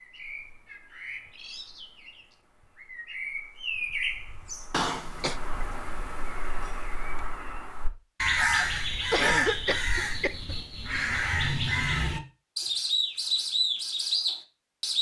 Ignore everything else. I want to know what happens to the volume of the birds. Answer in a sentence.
The loudness of the birds goes up.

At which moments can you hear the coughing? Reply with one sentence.
You can hear the coughing from 4.7 to 5.4 s and from 9.1 to 10.6 s.